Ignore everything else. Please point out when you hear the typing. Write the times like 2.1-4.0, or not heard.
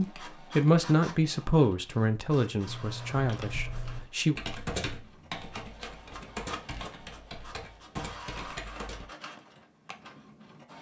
2.6-9.1.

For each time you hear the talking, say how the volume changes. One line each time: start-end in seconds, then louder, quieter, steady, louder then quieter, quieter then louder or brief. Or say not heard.
0.0-4.3 quieter.